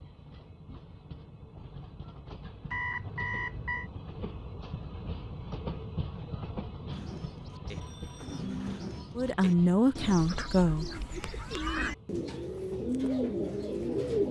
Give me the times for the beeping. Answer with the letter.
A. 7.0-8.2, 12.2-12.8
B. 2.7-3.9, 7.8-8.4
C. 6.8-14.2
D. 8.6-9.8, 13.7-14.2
B.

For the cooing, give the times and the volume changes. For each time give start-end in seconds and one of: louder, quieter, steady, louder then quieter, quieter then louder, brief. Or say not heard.
6.8-14.2 louder.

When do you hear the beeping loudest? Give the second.
3 s.